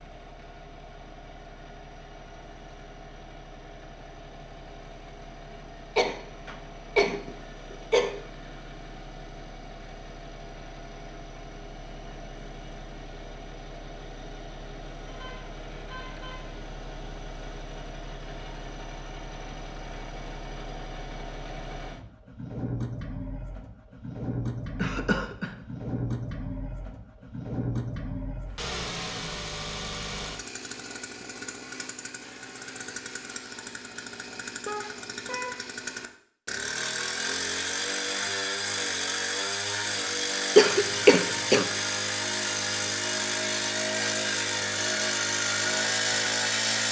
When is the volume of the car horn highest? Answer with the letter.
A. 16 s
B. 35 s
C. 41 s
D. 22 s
B.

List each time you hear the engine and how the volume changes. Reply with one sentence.
The engine can be heard from 0.0 to 46.8 s, getting louder.